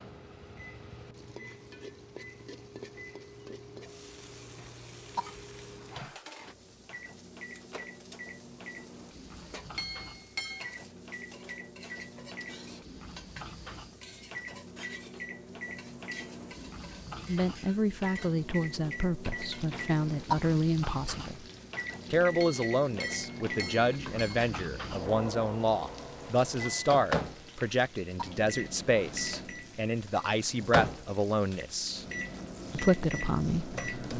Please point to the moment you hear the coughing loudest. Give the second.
20 s.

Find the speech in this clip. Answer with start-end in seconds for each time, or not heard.
17.2-21.4, 22.1-32.0, 32.7-34.1.